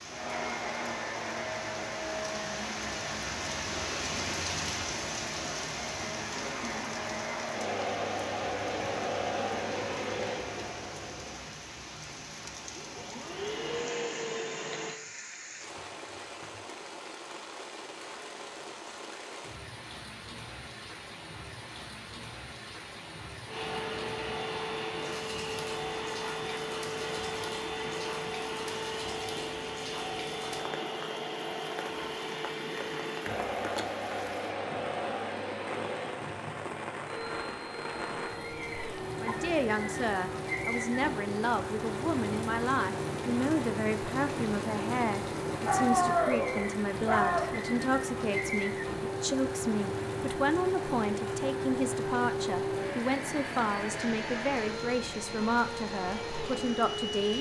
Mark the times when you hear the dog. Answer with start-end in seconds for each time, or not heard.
45.6-47.6.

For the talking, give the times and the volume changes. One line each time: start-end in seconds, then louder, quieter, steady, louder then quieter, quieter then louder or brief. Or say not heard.
39.2-57.3 steady.